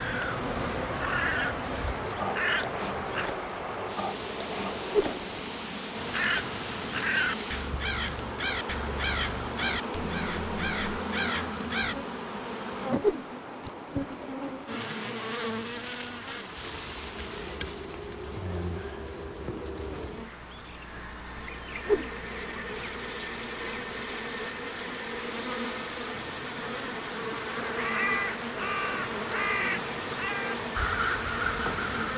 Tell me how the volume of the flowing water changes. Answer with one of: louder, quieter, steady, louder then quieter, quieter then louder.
quieter then louder.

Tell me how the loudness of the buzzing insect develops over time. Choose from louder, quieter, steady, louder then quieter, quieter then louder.
steady.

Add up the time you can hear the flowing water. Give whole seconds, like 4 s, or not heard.
32 s.